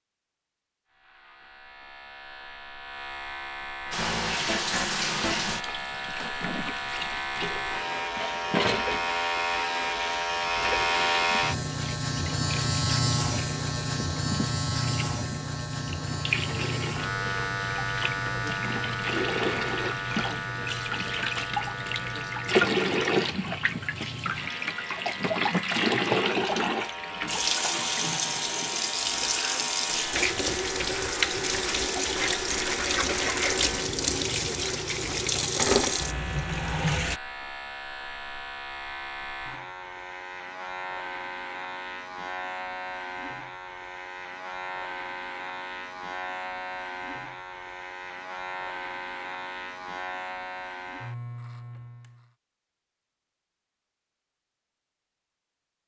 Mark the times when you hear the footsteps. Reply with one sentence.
The footsteps can't be heard in this clip.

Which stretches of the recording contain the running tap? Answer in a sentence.
You can hear the running tap from 3.9 to 37.2 s.